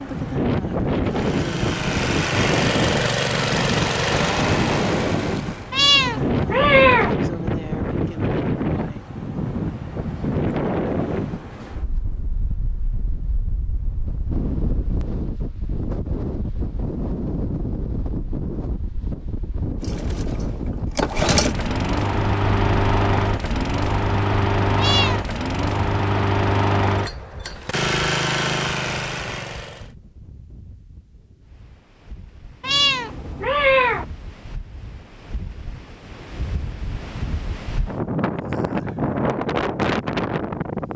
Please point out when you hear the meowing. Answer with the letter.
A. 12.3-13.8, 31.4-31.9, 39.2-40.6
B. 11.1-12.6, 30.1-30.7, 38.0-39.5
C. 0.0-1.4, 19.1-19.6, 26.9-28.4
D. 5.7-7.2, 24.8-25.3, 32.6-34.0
D.